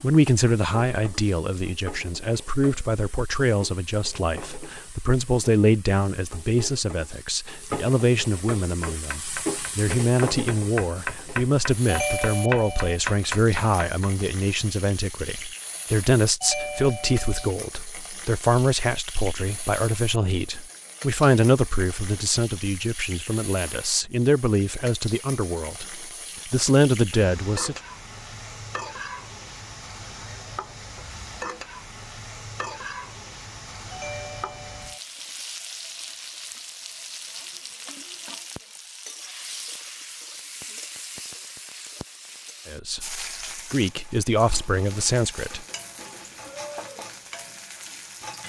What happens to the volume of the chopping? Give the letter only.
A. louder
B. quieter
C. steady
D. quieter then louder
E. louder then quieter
A.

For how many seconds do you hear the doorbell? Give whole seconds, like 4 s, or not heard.
3 s.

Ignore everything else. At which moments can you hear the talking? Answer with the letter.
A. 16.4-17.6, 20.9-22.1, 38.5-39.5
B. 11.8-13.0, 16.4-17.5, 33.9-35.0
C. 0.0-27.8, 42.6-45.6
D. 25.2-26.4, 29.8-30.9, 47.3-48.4
C.